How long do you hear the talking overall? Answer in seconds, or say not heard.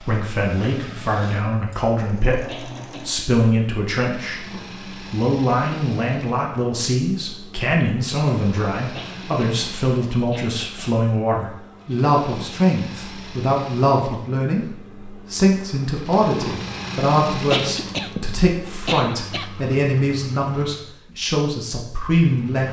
22 s.